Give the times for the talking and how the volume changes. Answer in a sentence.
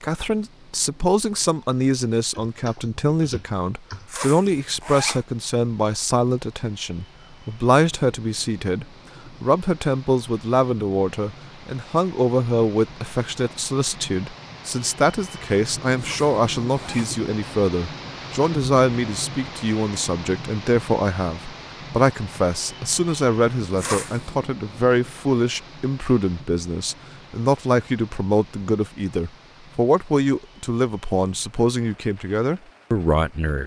You can hear the talking from 0.0 to 33.6 s, at a steady volume.